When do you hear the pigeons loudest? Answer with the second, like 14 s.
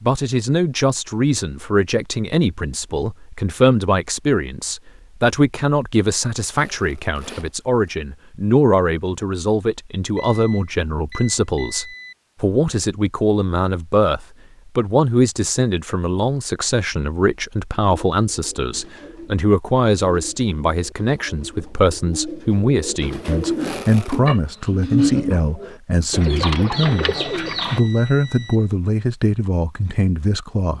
25 s.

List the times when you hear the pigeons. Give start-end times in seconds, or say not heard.
18.1-27.8.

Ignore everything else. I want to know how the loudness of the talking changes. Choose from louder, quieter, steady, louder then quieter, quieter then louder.
steady.